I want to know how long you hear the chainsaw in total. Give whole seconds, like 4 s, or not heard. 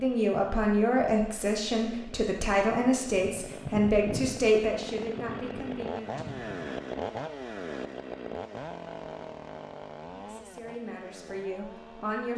12 s.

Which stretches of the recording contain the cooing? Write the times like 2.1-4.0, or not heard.
not heard.